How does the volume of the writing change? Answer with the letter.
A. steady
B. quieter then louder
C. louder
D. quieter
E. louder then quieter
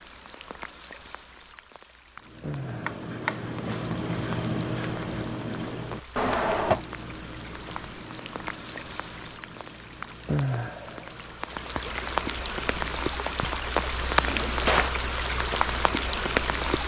D.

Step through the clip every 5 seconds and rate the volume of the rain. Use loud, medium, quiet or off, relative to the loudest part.
quiet, quiet, loud, loud.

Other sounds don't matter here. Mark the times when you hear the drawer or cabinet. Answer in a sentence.
The drawer or cabinet can be heard from 2.9 to 3.8 s, from 6.2 to 6.8 s and from 14.2 to 15.0 s.